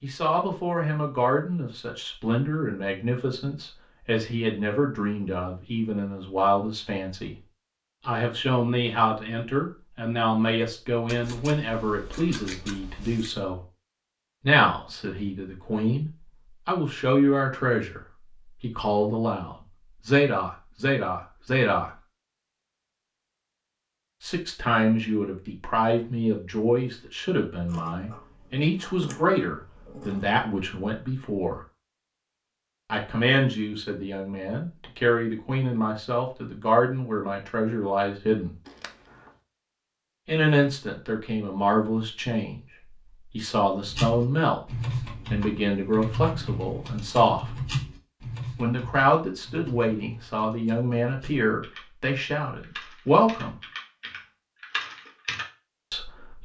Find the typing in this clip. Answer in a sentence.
You can hear the typing from 43.9 to 55.5 s.